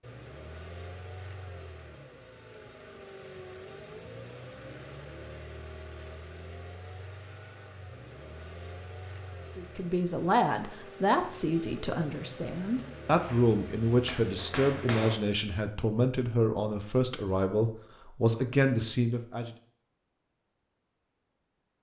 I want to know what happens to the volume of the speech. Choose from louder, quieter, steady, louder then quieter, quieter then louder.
steady.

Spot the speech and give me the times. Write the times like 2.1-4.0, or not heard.
9.6-19.5.